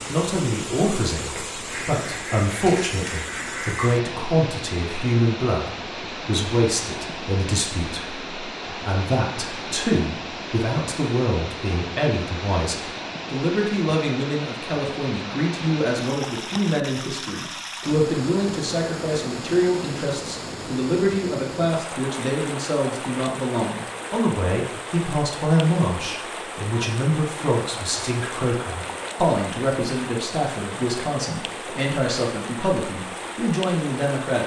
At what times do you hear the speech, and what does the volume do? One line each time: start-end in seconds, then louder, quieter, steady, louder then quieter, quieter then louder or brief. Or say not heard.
0.1-34.4 steady.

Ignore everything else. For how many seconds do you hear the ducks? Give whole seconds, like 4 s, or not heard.
2 s.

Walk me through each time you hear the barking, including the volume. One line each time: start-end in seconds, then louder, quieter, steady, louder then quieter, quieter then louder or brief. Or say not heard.
not heard.